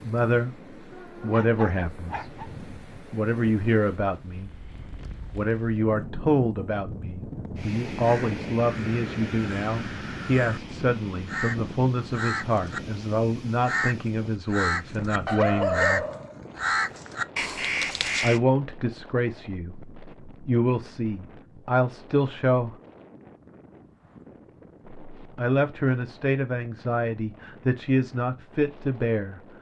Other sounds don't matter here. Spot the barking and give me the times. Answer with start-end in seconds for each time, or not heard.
0.9-2.5, 15.2-17.1.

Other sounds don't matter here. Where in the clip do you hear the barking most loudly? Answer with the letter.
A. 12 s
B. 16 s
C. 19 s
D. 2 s
B.